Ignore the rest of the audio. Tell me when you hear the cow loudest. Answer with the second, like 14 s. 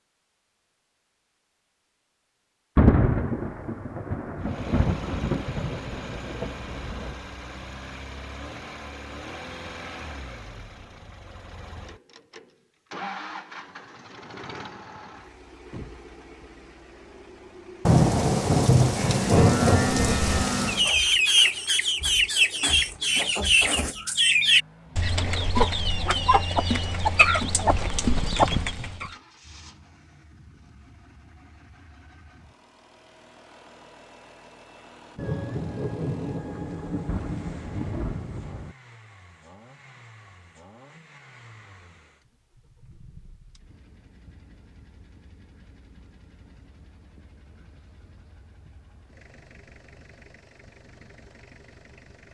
20 s.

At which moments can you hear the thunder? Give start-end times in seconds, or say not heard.
2.8-7.2, 17.9-20.9, 35.1-38.8.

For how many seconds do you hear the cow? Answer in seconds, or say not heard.
2 s.